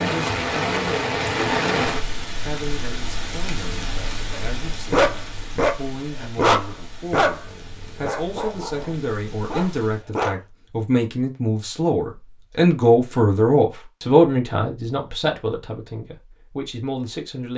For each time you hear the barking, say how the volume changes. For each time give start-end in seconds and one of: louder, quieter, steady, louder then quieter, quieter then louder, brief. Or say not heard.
4.3-10.4 quieter.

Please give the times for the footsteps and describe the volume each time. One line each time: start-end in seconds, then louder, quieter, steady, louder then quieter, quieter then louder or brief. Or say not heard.
not heard.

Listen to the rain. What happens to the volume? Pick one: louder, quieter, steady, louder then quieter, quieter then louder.
quieter.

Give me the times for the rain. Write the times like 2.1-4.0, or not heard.
0.0-10.1.